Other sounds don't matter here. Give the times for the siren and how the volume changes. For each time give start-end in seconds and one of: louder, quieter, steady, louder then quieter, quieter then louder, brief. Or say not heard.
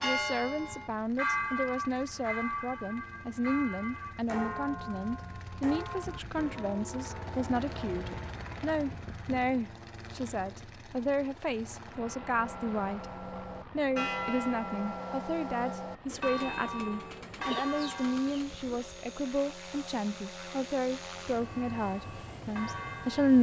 not heard.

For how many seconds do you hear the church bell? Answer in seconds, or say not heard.
17 s.